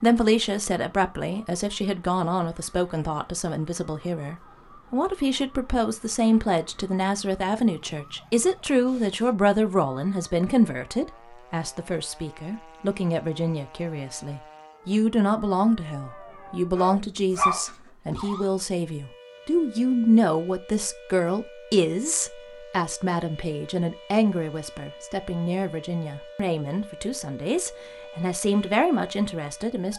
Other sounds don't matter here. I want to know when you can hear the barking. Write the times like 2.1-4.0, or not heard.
16.7-18.2.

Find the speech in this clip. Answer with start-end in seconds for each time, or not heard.
0.0-29.9.